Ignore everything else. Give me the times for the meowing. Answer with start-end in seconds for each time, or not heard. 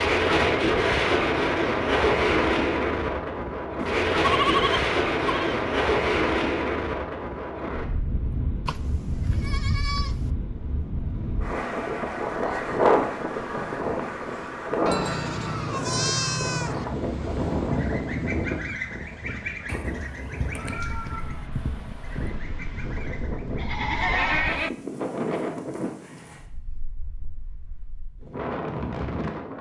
19.6-22.4.